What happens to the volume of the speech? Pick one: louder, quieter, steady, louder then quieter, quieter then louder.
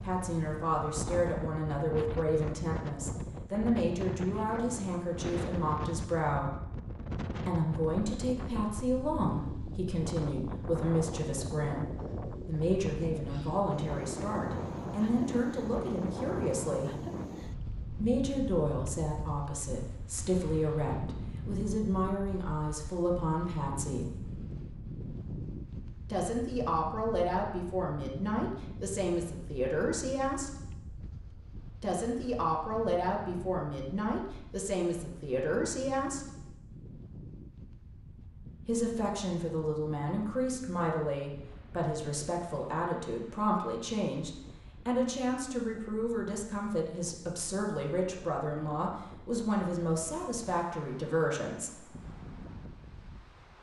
steady.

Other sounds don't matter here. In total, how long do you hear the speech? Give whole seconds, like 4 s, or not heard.
45 s.